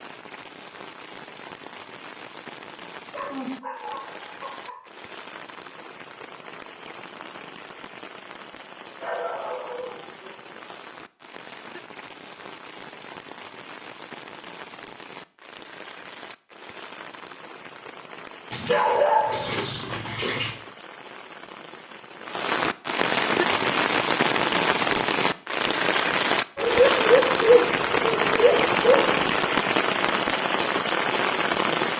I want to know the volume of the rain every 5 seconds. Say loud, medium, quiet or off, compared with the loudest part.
quiet, quiet, quiet, quiet, loud, loud, loud.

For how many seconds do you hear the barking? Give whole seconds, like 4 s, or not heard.
8 s.